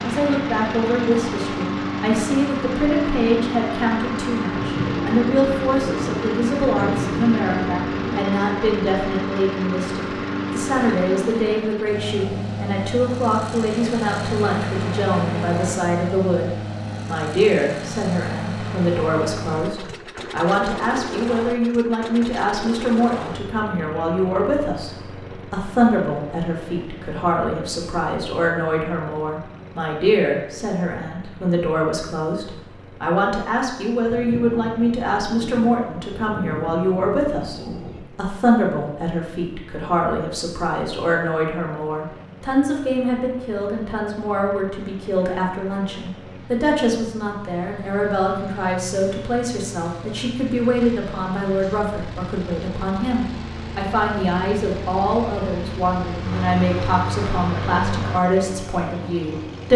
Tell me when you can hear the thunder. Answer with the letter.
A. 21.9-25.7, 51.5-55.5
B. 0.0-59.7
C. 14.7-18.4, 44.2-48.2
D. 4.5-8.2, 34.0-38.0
D.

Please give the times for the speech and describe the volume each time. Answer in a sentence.
The speech can be heard from 0.0 to 59.7 s, at a steady volume.